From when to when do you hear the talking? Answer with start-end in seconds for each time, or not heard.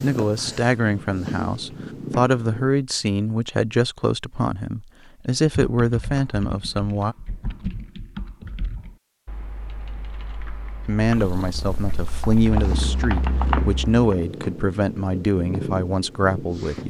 0.0-7.2, 10.8-16.8.